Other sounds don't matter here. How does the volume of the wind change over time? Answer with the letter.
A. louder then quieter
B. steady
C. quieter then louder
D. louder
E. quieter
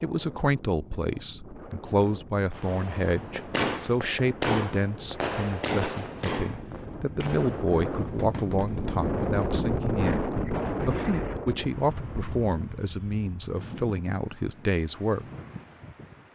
A.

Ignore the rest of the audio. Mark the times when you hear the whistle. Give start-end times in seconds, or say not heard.
not heard.